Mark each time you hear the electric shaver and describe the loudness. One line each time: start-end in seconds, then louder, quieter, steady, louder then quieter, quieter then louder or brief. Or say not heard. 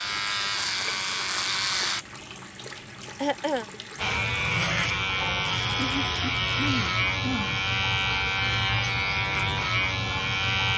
0.0-2.0 brief
4.0-10.7 steady.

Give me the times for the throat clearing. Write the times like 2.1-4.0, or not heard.
3.2-3.6, 5.8-7.6.